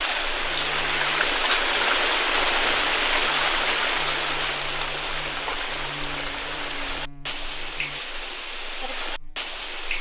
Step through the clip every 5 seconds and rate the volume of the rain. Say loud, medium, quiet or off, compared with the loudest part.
loud, medium.